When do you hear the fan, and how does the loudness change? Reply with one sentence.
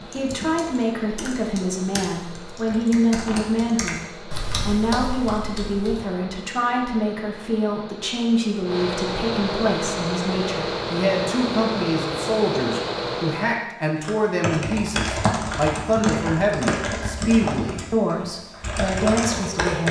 The fan can be heard from 0.0 to 13.7 s, getting louder.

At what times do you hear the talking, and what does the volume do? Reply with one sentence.
You can hear the talking from 0.1 to 19.8 s, at a steady volume.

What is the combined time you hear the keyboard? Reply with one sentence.
You can hear the keyboard for 12 seconds altogether.